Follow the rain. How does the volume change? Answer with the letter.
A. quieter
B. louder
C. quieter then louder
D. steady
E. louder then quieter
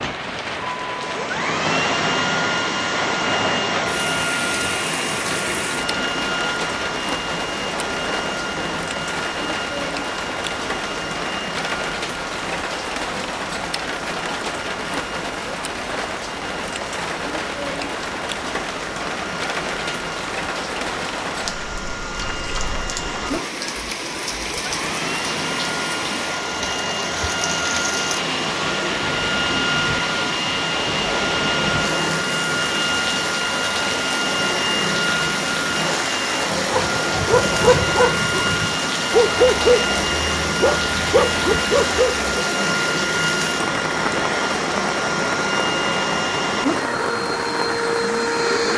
D.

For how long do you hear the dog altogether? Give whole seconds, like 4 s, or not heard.
6 s.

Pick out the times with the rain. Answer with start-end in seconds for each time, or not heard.
0.0-48.7.